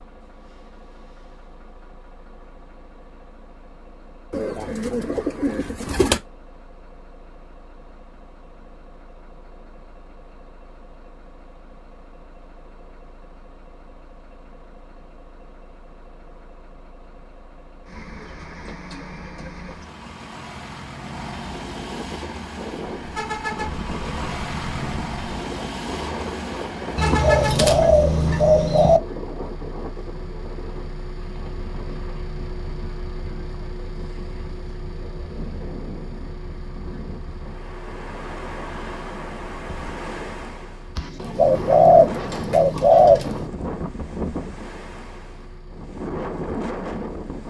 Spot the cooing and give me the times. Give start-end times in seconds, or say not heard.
4.3-6.2, 26.9-29.0, 41.0-43.5.